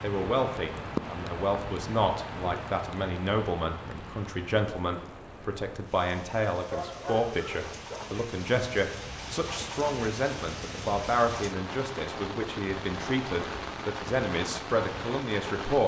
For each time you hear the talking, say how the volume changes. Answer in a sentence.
The talking can be heard from 0.0 to 15.8 s, at a steady volume.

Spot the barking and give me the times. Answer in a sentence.
You can hear the barking from 6.5 to 8.0 s.